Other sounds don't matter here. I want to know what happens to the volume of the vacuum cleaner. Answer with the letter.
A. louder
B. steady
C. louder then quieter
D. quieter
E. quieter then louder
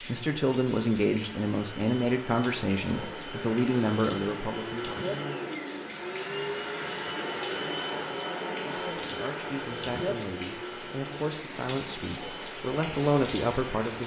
C.